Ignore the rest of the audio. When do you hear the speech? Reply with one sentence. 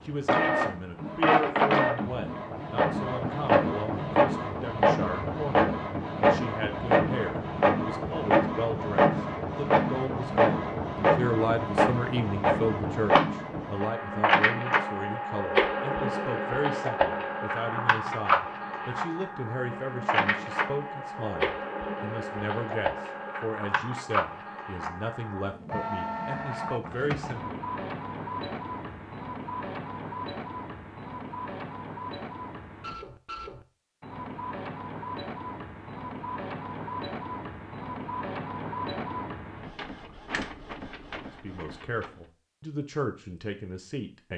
You can hear the speech from 0.0 to 27.6 s and from 41.2 to 44.3 s.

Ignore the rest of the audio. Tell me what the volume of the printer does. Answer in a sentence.
The loudness of the printer goes down.